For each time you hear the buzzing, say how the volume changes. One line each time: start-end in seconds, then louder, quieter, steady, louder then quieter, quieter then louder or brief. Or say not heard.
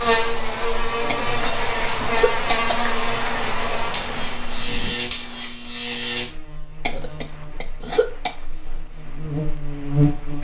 0.0-10.3 quieter.